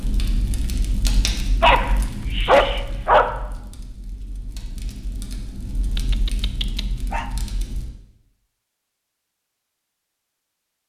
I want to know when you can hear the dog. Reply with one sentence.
The dog can be heard from 1.6 to 3.2 s and from 6.0 to 7.3 s.